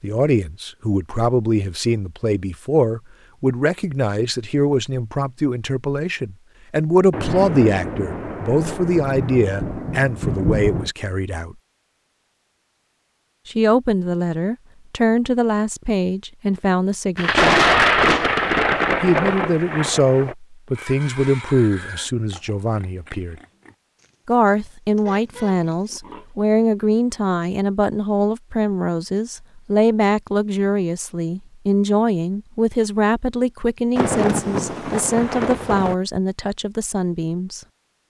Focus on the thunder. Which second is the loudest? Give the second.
18 s.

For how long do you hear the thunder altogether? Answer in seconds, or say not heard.
9 s.